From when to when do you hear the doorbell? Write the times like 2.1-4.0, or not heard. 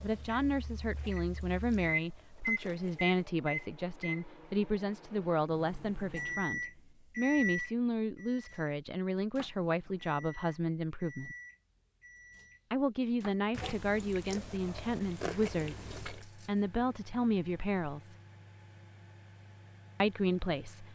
not heard.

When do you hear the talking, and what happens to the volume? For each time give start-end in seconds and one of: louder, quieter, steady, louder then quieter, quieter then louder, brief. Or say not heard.
0.0-11.3 steady
12.7-18.1 steady
20.0-20.9 brief.